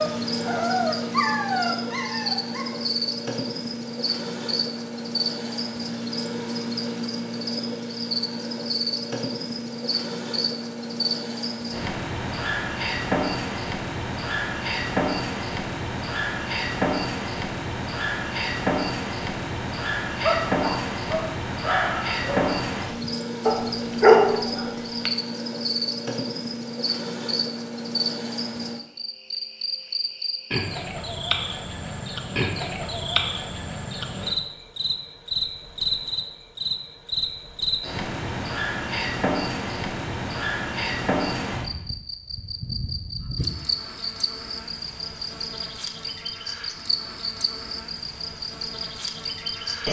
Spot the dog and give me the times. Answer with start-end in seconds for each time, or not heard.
0.0-2.6, 20.2-25.1.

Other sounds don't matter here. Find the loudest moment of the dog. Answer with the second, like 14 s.
24 s.